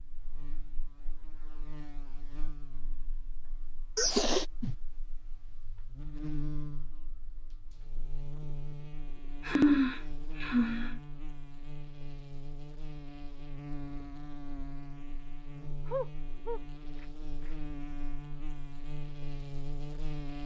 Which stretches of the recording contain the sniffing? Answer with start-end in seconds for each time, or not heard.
4.0-4.8, 9.4-11.0, 15.8-17.5.